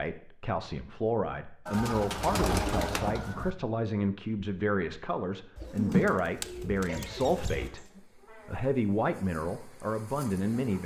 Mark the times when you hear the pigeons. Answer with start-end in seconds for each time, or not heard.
1.6-3.5, 5.5-7.7.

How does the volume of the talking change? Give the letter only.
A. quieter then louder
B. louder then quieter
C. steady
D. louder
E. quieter
C.